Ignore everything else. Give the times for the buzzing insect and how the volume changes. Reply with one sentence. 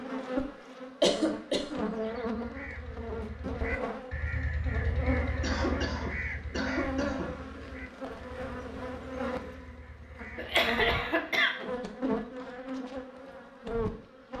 The buzzing insect can be heard from 0.0 to 14.3 s, at a steady volume.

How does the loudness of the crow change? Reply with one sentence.
The loudness of the crow goes up, then down.